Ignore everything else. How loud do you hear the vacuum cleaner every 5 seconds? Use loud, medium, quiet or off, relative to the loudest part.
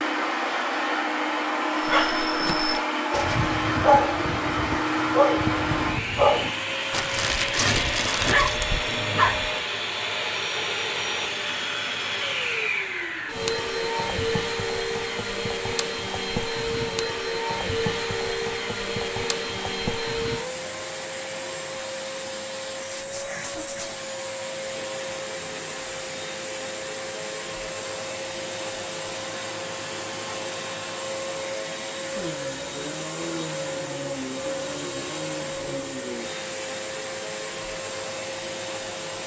loud, loud, loud, loud, medium, medium, medium, medium.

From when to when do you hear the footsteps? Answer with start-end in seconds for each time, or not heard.
not heard.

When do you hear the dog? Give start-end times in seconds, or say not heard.
1.9-9.5.